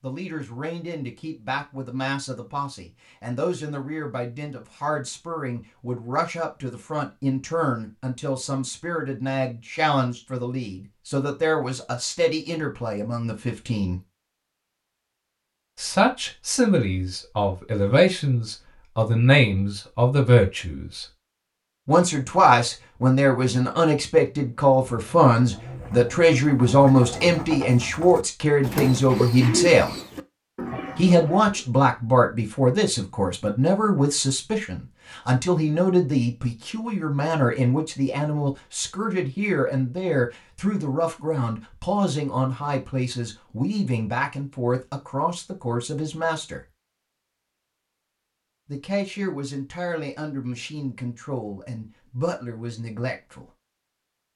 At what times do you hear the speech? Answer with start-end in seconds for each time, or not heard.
0.0-14.0, 15.8-21.1, 21.9-29.9, 30.9-46.6, 48.7-53.5.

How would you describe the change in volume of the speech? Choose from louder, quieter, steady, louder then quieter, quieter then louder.
louder then quieter.